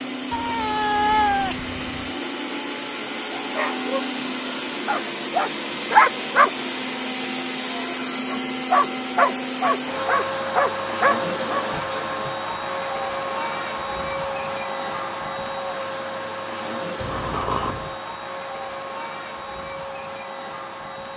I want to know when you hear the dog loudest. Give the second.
6 s.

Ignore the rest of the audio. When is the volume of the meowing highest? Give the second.
1 s.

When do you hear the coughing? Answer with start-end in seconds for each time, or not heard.
not heard.